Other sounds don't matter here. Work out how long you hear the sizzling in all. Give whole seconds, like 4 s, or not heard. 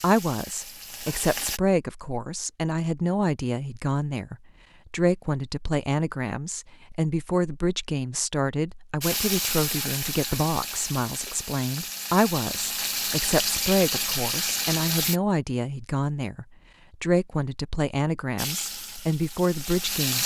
10 s.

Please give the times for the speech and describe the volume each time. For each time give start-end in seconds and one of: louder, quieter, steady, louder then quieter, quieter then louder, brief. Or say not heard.
0.0-20.2 steady.